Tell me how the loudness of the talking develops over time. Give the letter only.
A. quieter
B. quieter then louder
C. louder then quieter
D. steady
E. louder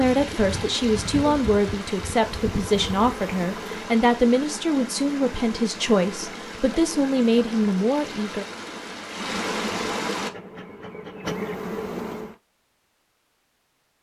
D.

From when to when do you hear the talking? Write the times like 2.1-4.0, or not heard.
0.0-8.4.